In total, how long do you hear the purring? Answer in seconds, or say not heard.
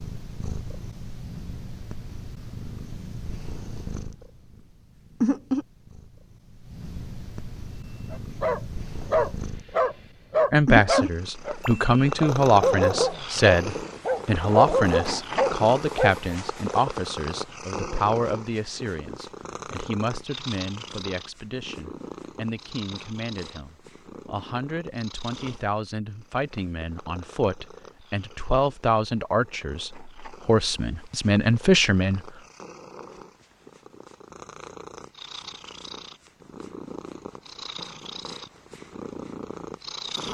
40 s.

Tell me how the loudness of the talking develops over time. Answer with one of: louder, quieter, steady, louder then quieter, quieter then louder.
quieter then louder.